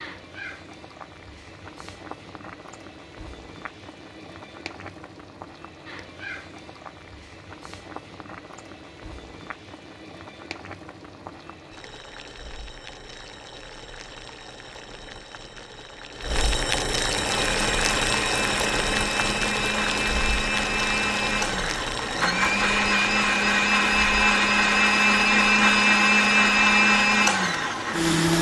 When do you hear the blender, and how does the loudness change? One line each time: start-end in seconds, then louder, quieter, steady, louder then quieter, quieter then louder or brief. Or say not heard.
17.1-28.3 louder.